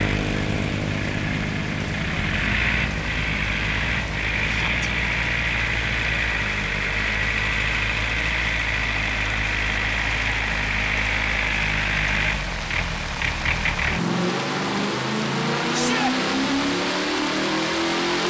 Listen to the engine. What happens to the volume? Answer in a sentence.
The volume of the engine stays about the same.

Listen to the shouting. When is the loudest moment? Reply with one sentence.
The loudest moment of the shouting is at 16 seconds.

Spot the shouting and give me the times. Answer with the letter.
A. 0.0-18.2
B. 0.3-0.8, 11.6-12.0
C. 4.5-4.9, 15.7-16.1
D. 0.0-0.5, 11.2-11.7
C.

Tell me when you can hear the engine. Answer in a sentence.
The engine can be heard from 0.0 to 18.2 s.